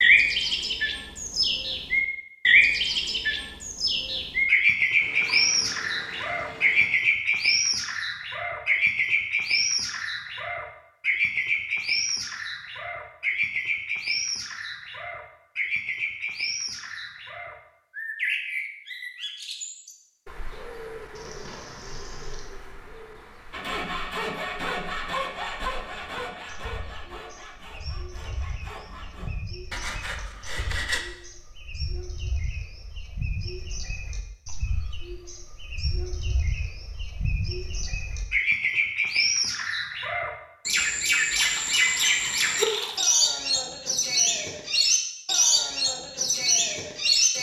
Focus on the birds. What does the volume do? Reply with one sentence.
The loudness of the birds goes down, then up.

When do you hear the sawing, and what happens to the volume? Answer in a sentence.
You can hear the sawing from 23.5 to 31.0 s, getting quieter then louder.